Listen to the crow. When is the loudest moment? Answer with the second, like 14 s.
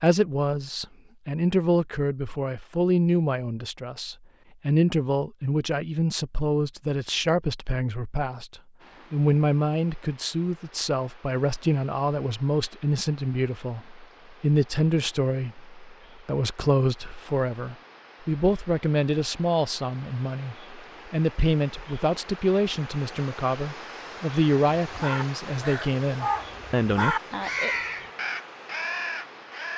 27 s.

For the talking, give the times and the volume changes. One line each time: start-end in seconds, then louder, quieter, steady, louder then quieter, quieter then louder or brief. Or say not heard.
0.0-27.1 steady.